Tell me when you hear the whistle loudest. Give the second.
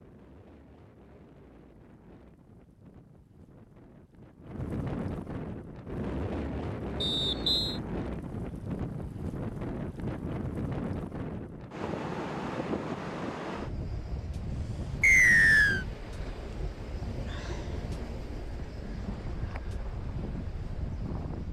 15 s.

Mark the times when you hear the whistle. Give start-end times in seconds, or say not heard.
7.0-7.8, 15.0-15.8.